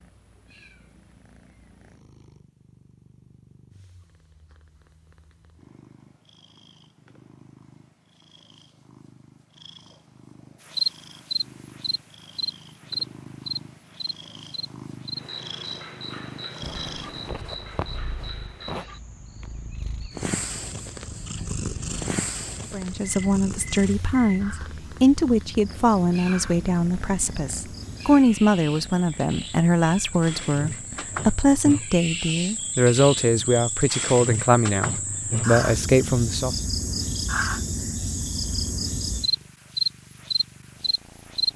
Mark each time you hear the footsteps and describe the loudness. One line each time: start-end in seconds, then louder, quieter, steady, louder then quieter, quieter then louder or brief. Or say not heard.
not heard.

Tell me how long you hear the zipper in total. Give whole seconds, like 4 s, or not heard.
2 s.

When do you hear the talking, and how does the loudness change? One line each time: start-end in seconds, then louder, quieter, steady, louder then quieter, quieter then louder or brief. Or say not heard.
22.7-36.5 steady.